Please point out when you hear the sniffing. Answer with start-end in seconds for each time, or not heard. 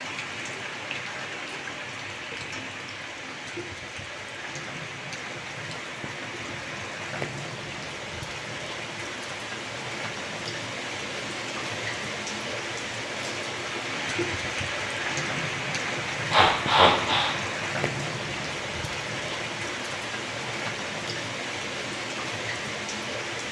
16.3-17.4.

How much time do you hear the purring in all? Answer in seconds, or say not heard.
not heard.